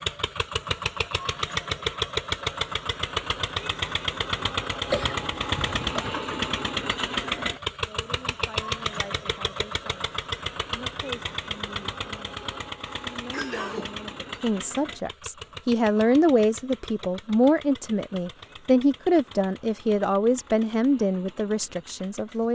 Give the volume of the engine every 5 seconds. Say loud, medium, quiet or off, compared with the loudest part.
loud, loud, medium, quiet, quiet.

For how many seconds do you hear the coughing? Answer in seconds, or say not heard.
2 s.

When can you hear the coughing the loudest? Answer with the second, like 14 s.
5 s.